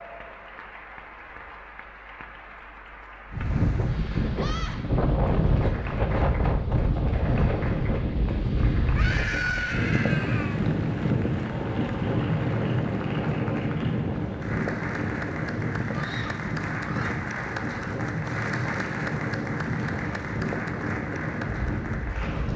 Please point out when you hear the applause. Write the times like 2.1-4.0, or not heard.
0.0-22.5.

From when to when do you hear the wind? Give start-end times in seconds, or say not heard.
3.3-22.5.